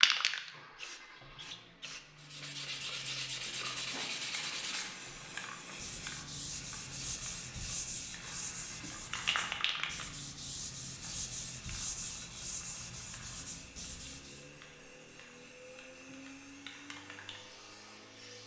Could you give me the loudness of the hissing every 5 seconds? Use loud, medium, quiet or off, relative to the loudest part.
loud, medium, quiet, quiet.